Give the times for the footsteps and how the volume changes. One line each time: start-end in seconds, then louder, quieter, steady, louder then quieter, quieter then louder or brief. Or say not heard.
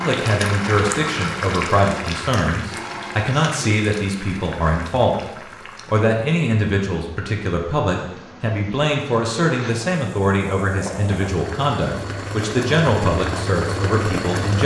not heard.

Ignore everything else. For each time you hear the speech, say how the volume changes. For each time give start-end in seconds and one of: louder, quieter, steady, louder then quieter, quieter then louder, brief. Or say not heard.
0.0-14.6 steady.